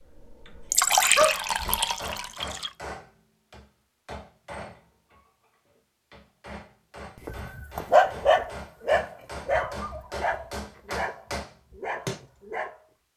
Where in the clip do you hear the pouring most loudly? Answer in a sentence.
The volume of the pouring peaks at 1 second.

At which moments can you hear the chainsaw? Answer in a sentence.
The chainsaw can't be heard in this clip.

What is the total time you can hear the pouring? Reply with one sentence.
The pouring can be heard for 2 seconds in total.